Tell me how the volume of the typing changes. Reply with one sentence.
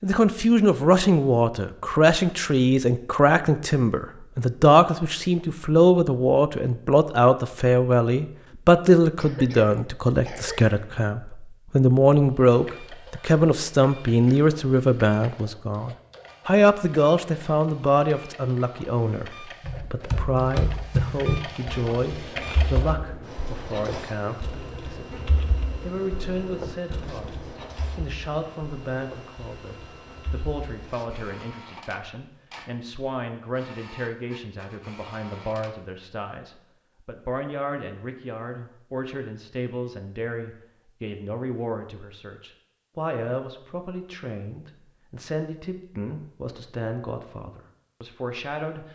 The loudness of the typing goes down.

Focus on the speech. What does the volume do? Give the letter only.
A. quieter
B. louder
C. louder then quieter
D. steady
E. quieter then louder
A.